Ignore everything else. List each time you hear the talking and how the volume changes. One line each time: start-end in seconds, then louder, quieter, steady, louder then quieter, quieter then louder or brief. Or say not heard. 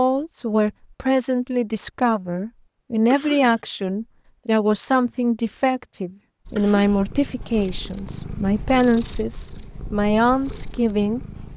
0.0-11.2 steady.